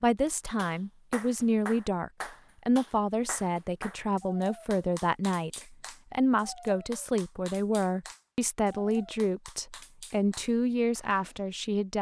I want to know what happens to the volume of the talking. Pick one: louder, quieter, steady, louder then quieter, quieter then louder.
steady.